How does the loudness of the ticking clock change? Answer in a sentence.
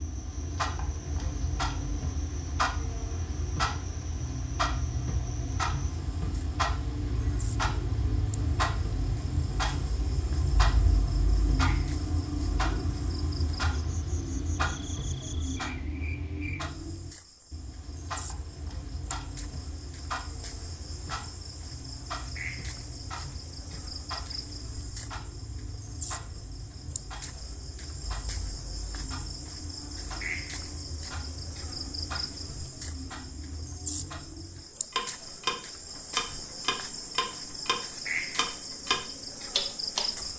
The loudness of the ticking clock goes down, then up.